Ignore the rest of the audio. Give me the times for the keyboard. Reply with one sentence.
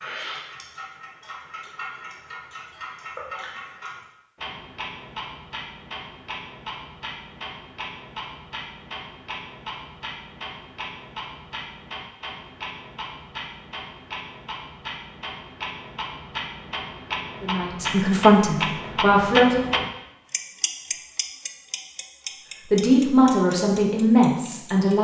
You can't hear the keyboard here.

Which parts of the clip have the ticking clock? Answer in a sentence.
You can hear the ticking clock from 0.0 to 24.9 s.